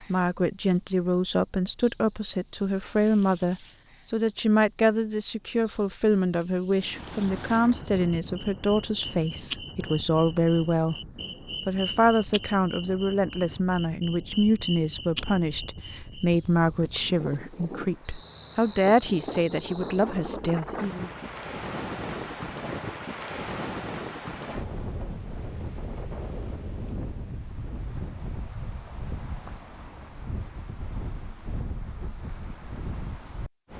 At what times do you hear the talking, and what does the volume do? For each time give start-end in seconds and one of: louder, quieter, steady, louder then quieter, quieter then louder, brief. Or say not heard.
0.1-21.1 steady.